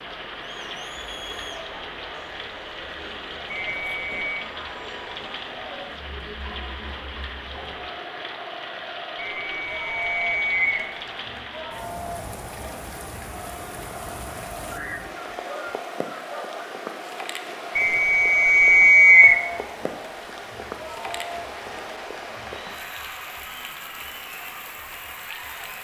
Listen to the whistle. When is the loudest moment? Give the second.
19 s.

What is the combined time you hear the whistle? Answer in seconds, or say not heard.
4 s.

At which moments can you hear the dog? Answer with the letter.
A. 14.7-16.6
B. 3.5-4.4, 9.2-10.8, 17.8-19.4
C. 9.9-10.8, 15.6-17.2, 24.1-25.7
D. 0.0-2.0
A.